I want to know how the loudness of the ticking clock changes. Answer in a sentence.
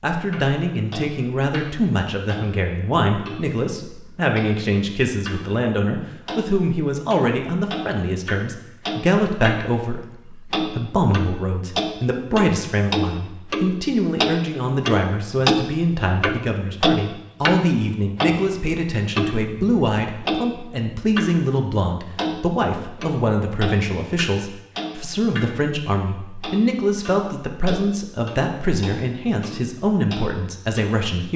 The loudness of the ticking clock goes up, then down.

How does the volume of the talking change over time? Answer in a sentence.
The loudness of the talking stays about the same.